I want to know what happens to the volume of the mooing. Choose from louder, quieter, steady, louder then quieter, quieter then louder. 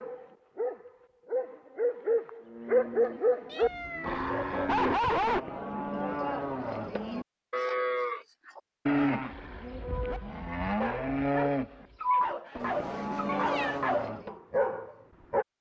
louder.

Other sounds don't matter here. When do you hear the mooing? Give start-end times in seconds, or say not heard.
2.4-14.3.